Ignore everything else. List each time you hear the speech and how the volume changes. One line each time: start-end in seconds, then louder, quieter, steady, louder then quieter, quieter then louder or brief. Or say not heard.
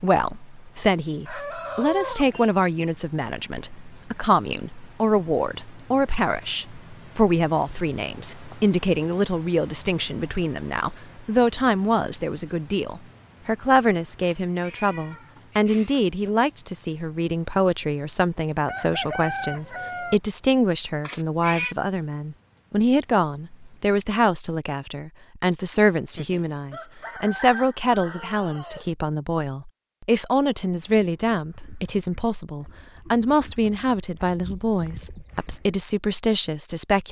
0.0-37.0 steady.